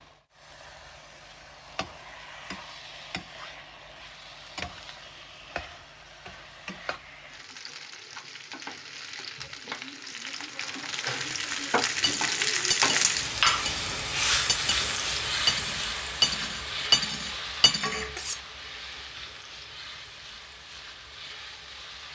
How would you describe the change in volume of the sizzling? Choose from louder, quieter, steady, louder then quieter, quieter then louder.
louder then quieter.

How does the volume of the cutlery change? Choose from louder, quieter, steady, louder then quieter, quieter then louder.
quieter then louder.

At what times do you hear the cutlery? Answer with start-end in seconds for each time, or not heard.
12.0-18.4.